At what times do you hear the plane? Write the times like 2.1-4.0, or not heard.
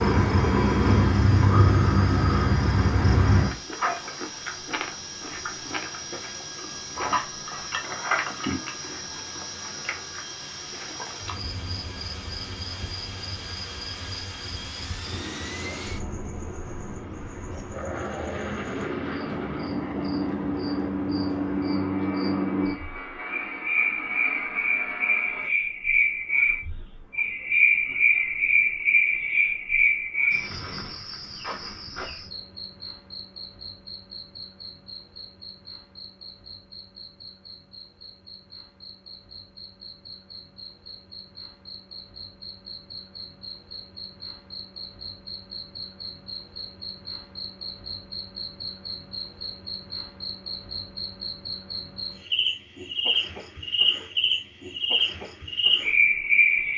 0.0-25.5.